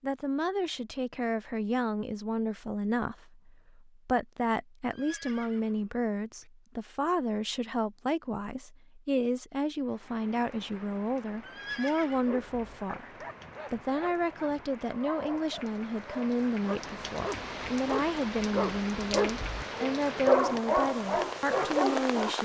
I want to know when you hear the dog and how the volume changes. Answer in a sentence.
You can hear the dog from 12.1 to 22.4 s, getting louder.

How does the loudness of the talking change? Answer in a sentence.
The volume of the talking stays about the same.